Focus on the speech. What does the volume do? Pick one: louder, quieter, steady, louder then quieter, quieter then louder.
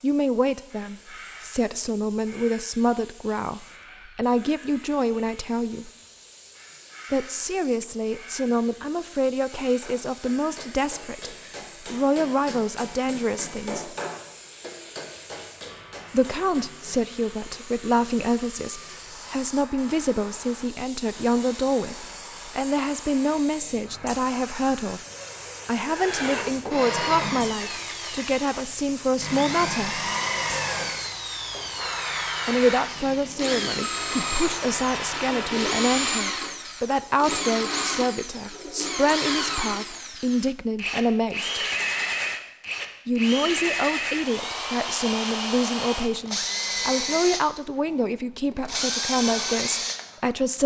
steady.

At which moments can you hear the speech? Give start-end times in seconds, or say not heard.
0.0-5.9, 7.1-13.9, 16.1-25.1, 25.6-30.0, 32.5-41.6, 43.0-50.6.